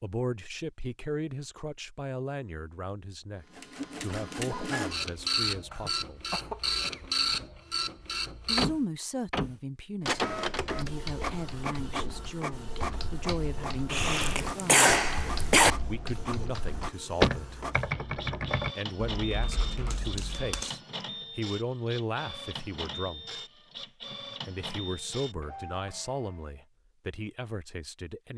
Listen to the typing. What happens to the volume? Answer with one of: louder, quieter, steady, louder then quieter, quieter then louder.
louder then quieter.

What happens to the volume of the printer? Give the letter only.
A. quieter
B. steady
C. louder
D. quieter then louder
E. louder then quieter
A.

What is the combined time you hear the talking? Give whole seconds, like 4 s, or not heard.
23 s.